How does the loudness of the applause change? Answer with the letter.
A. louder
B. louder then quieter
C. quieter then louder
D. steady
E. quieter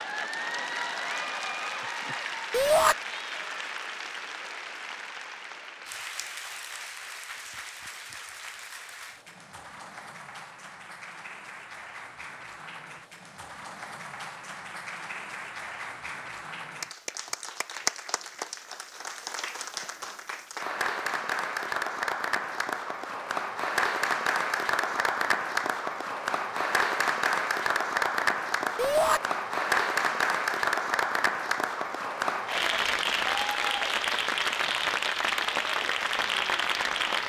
C.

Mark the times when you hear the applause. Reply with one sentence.
You can hear the applause from 0.0 to 37.2 s.